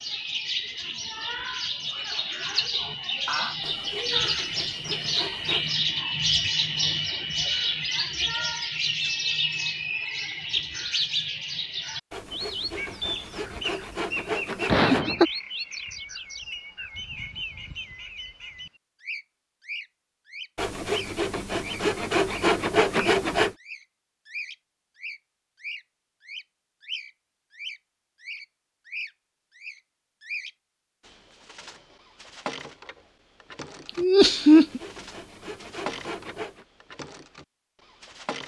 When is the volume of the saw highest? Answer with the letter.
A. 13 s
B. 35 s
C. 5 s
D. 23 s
D.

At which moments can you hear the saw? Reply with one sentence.
The saw can be heard from 3.6 to 5.8 s, from 12.1 to 15.1 s, from 20.6 to 23.6 s and from 34.2 to 36.6 s.